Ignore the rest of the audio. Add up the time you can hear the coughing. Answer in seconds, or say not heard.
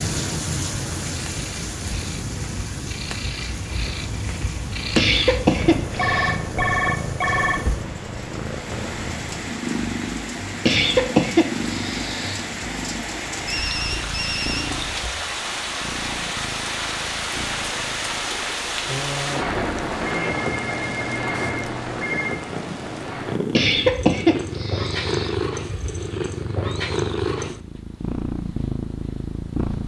5 s.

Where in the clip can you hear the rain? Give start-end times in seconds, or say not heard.
0.0-23.4.